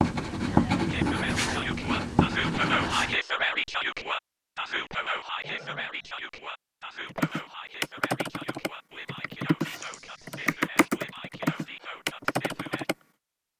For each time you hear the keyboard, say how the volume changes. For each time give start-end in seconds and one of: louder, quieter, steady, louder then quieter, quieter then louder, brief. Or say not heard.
7.1-12.9 quieter then louder.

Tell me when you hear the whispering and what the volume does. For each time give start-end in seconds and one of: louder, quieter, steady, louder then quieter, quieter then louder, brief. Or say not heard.
0.8-12.9 quieter.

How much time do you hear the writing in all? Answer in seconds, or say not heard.
3 s.